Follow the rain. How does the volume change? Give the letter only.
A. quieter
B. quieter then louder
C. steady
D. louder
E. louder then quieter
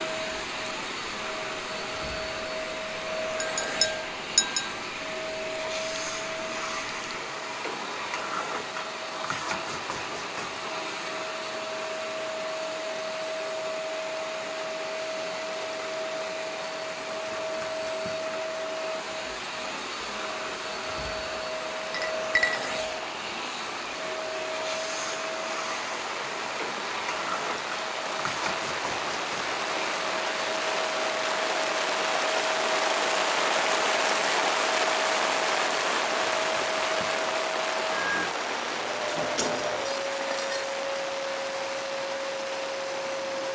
D.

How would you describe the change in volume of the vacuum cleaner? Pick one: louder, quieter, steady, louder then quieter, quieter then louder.
steady.